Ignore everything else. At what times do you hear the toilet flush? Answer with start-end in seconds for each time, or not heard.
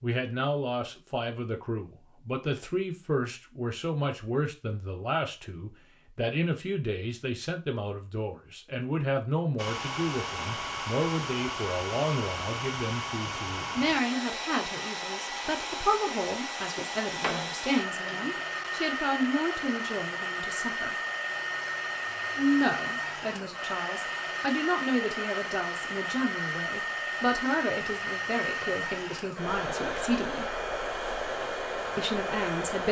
not heard.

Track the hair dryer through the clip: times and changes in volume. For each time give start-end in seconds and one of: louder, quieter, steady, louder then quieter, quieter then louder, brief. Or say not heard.
9.6-32.8 steady.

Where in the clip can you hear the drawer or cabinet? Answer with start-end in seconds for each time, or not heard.
16.8-18.4.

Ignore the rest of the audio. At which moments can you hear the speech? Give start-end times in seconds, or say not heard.
0.0-20.9, 22.4-30.6, 31.9-32.8.